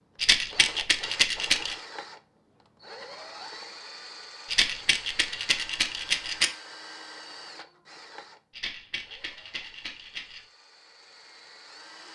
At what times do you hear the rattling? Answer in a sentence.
You can hear the rattling from 0.2 to 1.8 s, from 4.5 to 6.5 s and from 8.5 to 10.4 s.